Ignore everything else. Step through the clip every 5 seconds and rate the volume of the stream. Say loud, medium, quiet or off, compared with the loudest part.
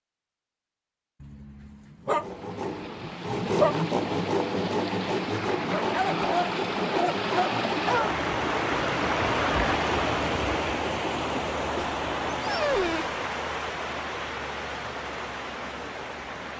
medium, loud, loud, medium.